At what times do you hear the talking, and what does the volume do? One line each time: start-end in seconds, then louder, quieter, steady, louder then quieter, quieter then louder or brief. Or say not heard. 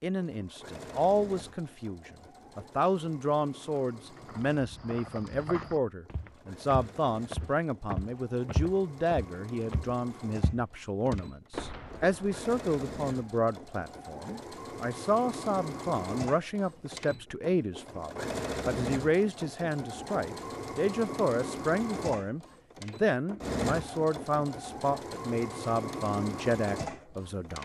0.0-27.6 steady.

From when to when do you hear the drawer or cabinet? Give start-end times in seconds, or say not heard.
not heard.